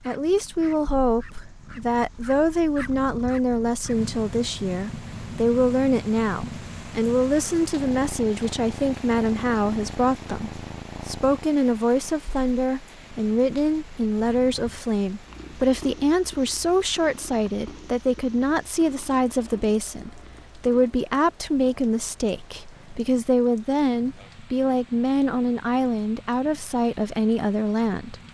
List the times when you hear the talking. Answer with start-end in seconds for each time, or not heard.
0.1-28.1.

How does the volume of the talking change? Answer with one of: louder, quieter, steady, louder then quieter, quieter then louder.
steady.